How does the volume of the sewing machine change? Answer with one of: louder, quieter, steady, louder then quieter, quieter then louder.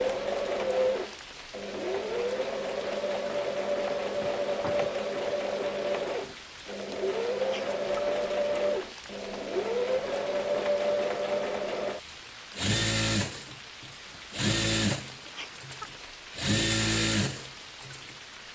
steady.